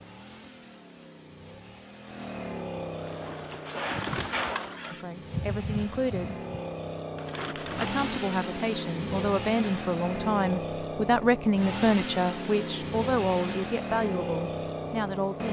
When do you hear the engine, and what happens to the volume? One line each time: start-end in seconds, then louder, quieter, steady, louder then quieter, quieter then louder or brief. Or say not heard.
0.0-15.4 louder.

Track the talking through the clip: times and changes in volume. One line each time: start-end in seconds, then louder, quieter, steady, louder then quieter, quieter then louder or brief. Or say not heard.
4.9-6.3 brief
7.8-15.4 louder then quieter.